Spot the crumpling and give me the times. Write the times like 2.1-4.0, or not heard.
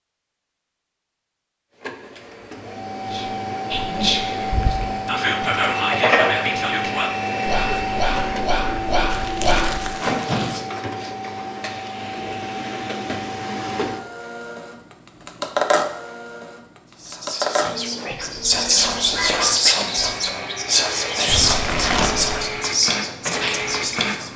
9.1-10.6, 21.2-22.4.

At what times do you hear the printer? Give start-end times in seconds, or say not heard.
1.8-24.3.